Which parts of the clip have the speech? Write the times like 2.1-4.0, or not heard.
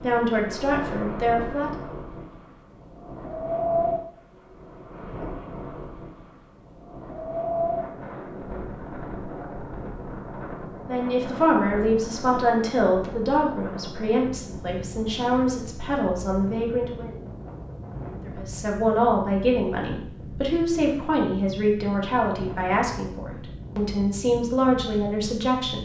0.0-1.7, 10.8-17.1, 18.2-25.8.